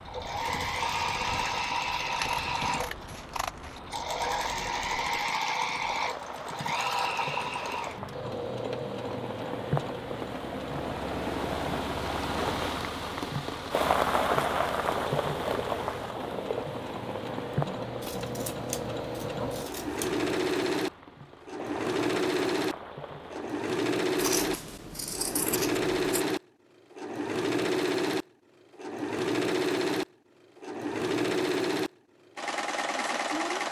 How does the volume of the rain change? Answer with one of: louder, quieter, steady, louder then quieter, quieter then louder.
louder then quieter.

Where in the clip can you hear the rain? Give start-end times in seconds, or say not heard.
0.0-23.6.